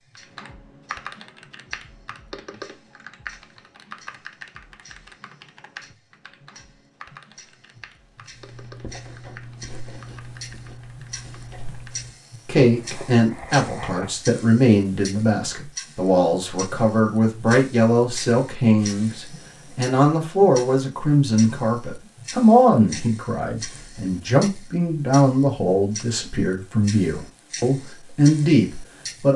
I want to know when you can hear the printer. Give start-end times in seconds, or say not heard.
not heard.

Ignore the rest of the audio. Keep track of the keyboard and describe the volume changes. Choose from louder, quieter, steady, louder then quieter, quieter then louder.
quieter.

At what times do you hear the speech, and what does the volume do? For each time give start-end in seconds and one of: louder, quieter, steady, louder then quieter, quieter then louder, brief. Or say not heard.
12.4-29.3 steady.